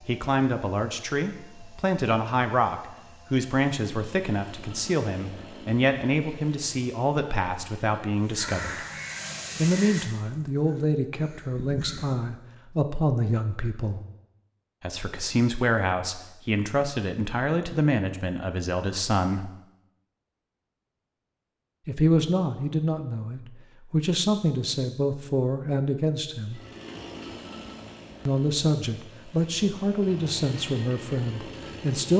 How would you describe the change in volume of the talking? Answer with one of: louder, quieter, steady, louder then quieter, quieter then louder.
steady.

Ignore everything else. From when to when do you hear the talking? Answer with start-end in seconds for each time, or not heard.
0.1-8.8, 9.6-14.0, 14.8-19.5, 21.9-26.6, 28.2-32.1.